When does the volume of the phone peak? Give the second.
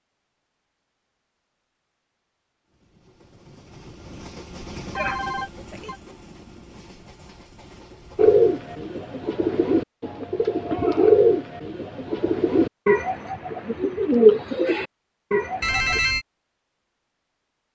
16 s.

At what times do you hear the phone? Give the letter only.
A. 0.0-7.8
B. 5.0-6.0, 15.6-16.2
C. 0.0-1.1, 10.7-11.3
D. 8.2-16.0
B.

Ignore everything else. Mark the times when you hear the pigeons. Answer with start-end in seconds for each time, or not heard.
8.2-16.0.